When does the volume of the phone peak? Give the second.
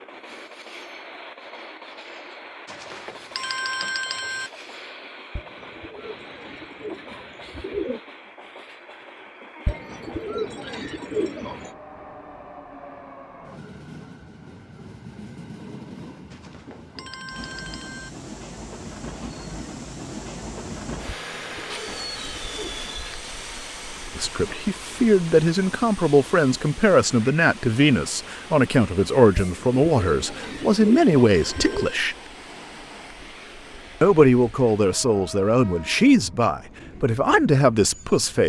4 s.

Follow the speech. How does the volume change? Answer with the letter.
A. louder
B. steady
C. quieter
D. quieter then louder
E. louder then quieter
B.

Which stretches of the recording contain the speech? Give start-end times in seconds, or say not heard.
24.1-32.1, 34.0-38.4.